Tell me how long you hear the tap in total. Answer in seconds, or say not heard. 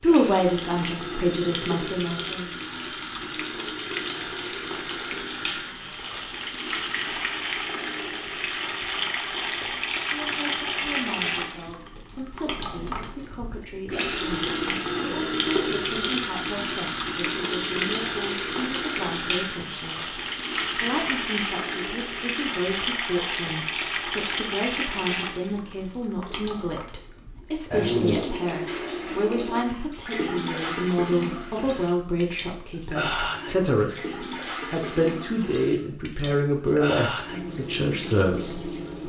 39 s.